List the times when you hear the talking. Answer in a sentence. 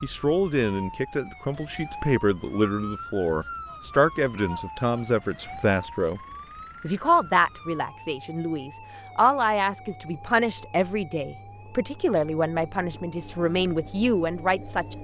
The talking can be heard from 0.0 to 6.2 s and from 6.8 to 14.9 s.